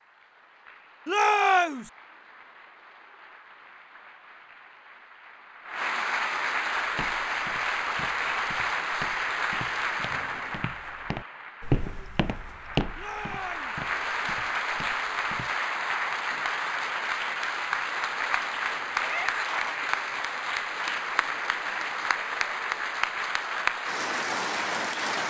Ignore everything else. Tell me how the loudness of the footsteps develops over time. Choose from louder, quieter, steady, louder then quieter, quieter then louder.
louder then quieter.